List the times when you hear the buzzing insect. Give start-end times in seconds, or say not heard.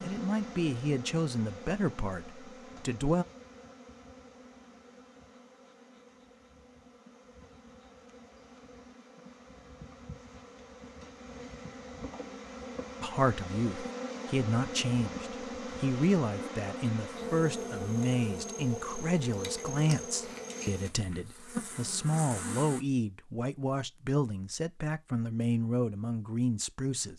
0.0-22.9.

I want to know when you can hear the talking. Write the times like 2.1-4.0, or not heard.
0.0-3.2, 13.0-27.1.